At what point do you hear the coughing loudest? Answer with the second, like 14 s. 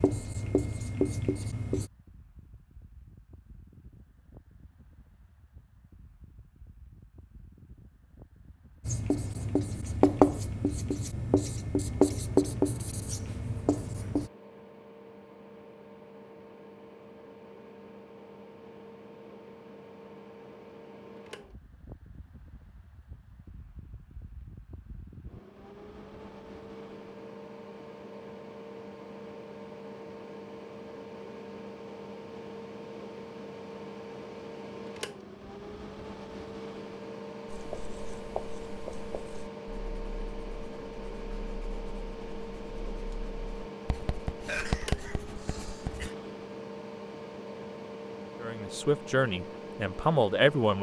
45 s.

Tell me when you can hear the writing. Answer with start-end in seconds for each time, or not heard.
0.0-1.9, 8.8-14.3, 37.5-46.1.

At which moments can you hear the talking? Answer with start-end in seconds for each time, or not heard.
48.4-50.7.